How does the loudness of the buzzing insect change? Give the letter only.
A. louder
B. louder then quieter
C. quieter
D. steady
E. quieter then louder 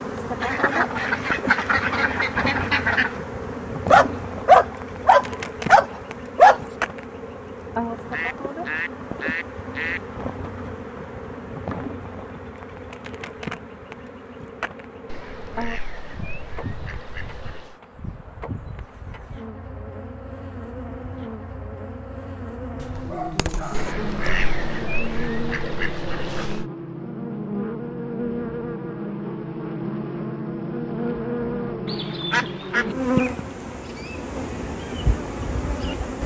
E.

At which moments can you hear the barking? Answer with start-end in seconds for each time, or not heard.
3.9-6.6, 22.8-24.4.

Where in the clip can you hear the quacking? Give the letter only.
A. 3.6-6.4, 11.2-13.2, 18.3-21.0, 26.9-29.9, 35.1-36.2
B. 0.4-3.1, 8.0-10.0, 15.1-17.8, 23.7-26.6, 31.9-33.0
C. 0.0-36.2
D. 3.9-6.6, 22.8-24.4
B.